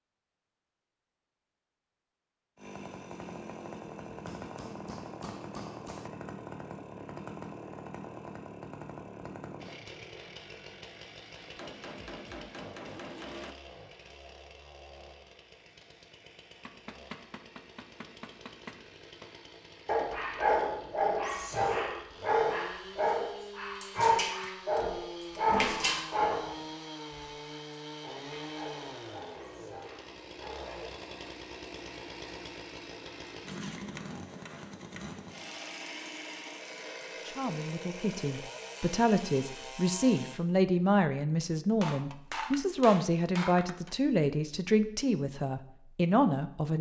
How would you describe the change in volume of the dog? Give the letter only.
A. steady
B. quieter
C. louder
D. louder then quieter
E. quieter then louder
B.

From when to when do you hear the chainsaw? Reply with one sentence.
You can hear the chainsaw from 2.5 to 40.4 s.